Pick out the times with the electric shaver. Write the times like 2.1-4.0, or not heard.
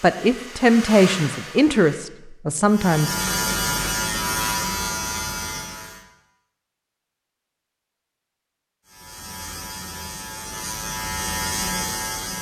2.6-6.0, 8.8-12.3.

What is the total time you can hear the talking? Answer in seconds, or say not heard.
3 s.